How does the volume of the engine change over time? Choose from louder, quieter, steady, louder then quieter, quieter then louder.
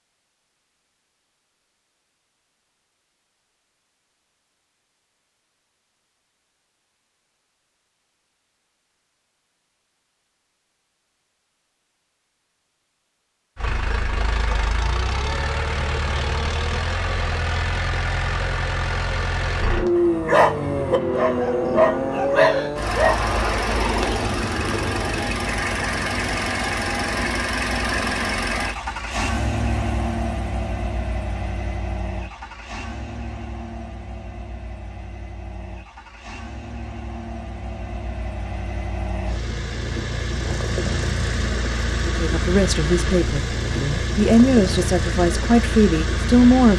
quieter then louder.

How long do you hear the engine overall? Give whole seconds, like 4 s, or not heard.
33 s.